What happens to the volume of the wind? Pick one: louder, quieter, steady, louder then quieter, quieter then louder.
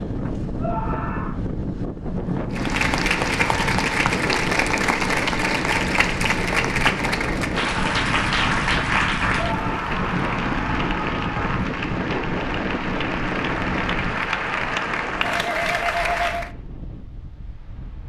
quieter.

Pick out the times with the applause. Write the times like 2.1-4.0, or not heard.
2.5-16.5.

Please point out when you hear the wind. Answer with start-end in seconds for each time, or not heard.
0.0-18.0.